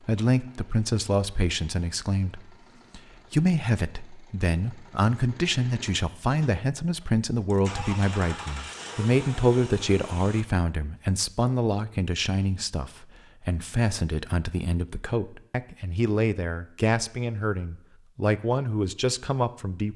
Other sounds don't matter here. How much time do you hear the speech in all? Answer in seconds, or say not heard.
20 s.